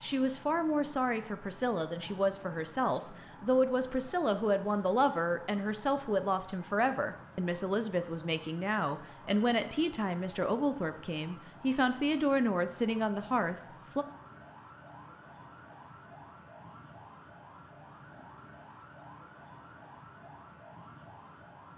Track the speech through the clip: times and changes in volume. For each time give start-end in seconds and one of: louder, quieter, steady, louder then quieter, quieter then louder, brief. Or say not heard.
0.0-14.1 steady.